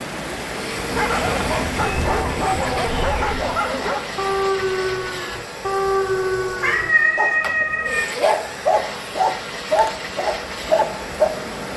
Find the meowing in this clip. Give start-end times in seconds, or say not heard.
1.2-3.6, 6.6-8.1.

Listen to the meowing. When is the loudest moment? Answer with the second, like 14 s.
7 s.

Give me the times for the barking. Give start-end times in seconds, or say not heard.
0.9-11.3.